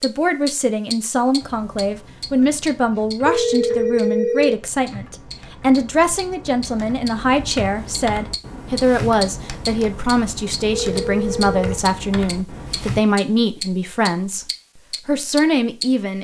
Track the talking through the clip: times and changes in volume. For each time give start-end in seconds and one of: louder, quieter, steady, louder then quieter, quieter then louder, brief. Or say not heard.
0.0-14.4 steady
15.1-16.1 brief.